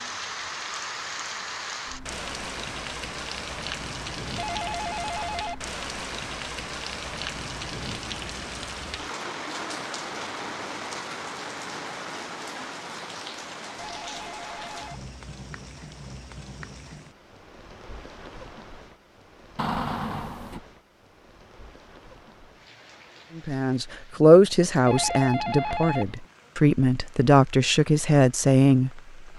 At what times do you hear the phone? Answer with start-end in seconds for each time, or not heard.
4.3-5.7, 13.8-15.1, 24.9-26.1.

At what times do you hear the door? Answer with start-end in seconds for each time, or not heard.
19.6-20.6.